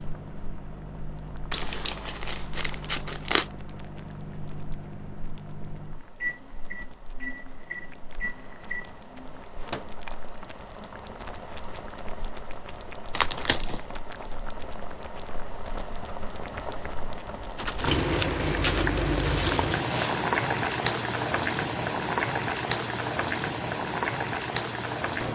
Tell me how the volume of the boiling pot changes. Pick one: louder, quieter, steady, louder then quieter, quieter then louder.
louder.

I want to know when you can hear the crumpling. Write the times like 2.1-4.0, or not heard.
1.5-3.5, 13.1-13.8, 17.6-20.2.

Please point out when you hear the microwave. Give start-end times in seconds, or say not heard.
0.0-9.9.